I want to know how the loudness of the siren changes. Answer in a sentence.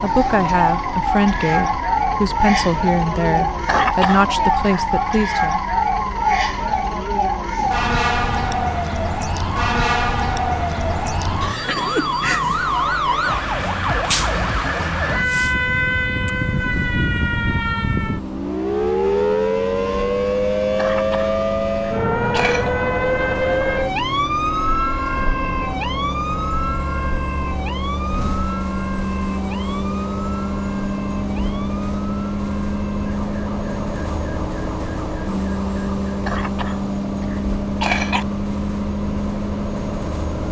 The loudness of the siren goes down.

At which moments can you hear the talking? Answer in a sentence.
The talking can be heard from 0.0 to 5.6 s.